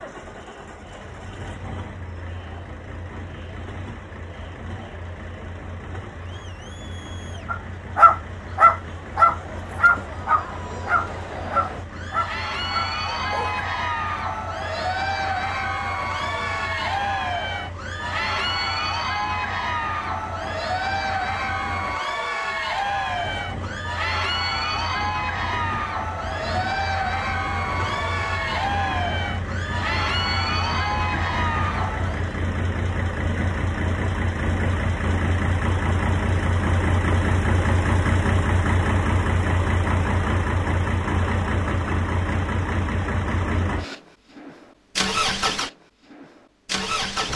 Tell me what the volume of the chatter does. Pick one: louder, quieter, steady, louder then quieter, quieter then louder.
louder.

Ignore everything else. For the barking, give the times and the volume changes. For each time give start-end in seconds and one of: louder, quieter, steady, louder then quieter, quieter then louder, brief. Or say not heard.
7.5-13.7 quieter.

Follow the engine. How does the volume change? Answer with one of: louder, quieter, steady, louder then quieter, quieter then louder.
louder.